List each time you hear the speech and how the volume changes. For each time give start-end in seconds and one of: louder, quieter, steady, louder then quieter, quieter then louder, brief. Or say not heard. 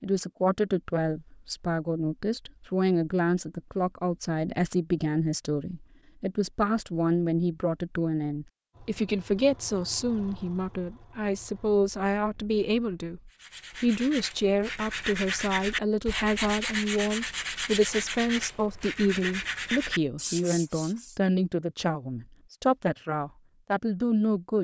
0.0-24.5 steady.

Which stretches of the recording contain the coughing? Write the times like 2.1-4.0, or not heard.
not heard.